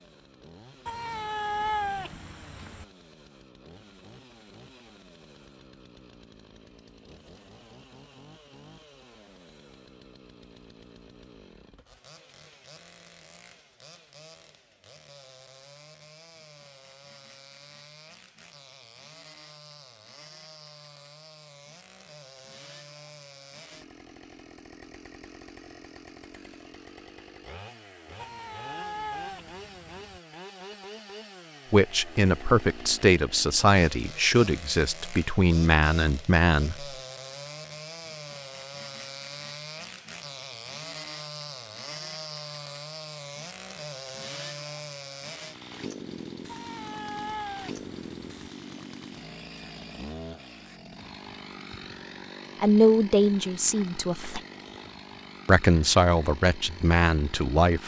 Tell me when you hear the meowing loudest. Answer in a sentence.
The volume of the meowing peaks at 2 seconds.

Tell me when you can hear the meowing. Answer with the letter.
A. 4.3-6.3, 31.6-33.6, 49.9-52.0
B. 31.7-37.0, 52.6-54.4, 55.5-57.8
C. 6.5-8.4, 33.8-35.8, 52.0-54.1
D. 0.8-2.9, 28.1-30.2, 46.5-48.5
D.